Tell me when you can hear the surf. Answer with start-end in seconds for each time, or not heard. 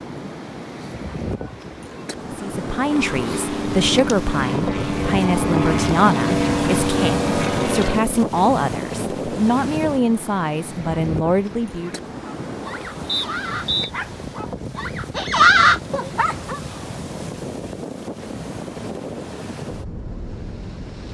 0.0-21.0.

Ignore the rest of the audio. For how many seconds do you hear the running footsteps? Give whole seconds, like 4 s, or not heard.
not heard.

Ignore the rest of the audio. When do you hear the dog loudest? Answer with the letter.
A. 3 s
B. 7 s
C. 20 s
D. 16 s
D.